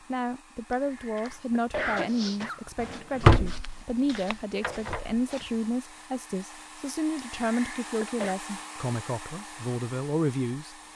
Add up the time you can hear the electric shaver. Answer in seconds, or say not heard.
not heard.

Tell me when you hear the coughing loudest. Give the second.
2 s.